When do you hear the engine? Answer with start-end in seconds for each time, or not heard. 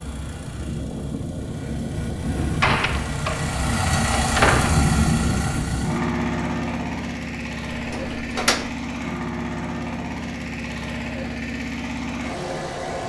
0.0-13.0.